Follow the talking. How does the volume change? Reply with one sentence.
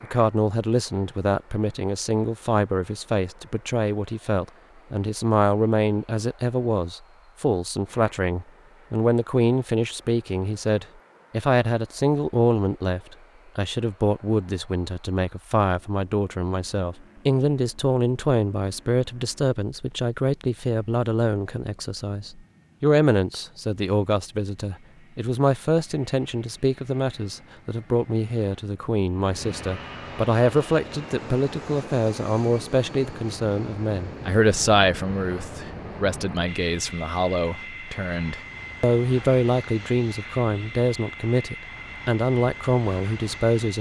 The loudness of the talking stays about the same.